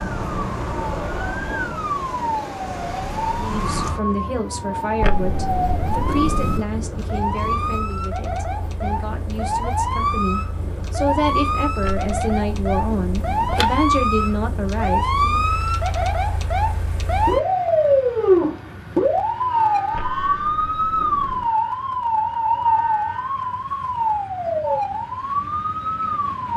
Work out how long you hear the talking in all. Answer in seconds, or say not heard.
12 s.